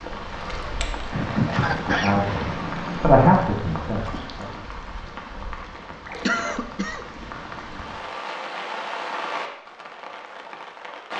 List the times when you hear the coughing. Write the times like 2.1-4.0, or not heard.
1.1-3.1, 6.2-7.0.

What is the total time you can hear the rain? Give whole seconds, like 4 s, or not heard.
11 s.